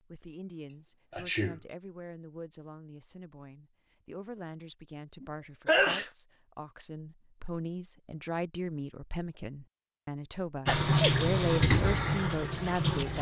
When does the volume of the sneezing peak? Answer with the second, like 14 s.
6 s.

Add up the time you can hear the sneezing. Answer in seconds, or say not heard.
2 s.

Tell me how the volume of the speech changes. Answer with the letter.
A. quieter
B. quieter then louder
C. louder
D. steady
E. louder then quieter
C.